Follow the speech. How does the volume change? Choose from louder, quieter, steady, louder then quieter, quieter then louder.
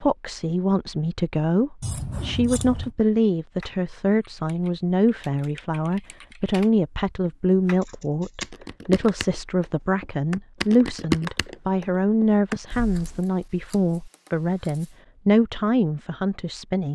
steady.